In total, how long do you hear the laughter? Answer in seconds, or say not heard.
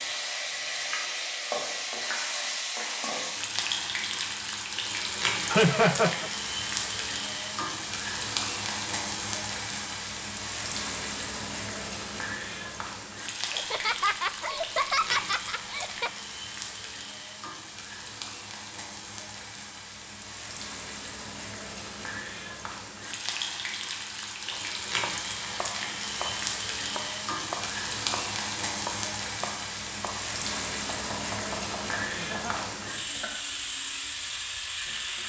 4 s.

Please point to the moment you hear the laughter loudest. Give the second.
6 s.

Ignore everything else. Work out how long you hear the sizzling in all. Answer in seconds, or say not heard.
35 s.